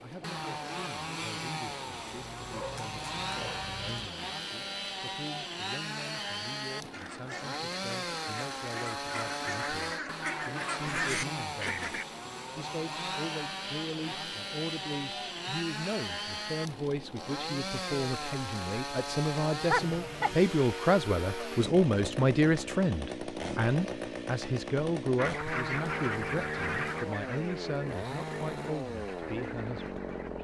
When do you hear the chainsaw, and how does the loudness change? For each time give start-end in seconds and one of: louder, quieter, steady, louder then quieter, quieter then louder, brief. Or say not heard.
0.0-30.3 steady.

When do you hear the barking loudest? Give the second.
20 s.